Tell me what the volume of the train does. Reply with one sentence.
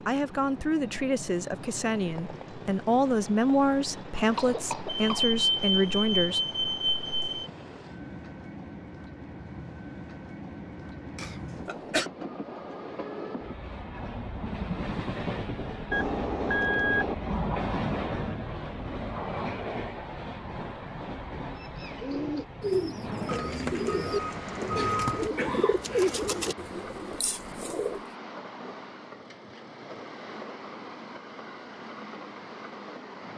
The volume of the train goes up, then down.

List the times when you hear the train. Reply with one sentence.
You can hear the train from 0.0 to 33.3 s.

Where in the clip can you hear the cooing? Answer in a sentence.
You can hear the cooing from 21.6 to 28.0 s.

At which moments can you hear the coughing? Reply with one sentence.
You can hear the coughing from 4.3 to 5.3 s, from 11.2 to 12.1 s and from 24.7 to 26.3 s.